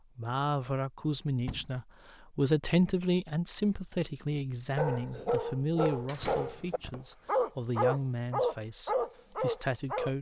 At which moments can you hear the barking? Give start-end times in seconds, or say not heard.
4.8-10.1.